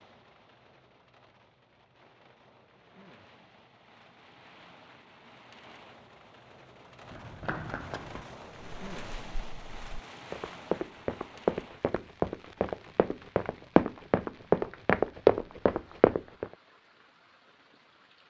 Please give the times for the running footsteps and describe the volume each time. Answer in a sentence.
You can hear the running footsteps from 7.1 to 16.4 s, getting louder.